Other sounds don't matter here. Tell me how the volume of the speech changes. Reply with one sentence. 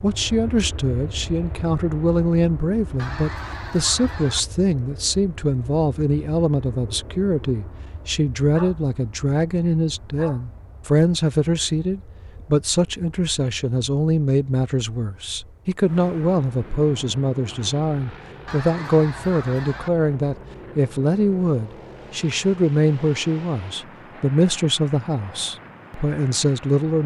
The loudness of the speech stays about the same.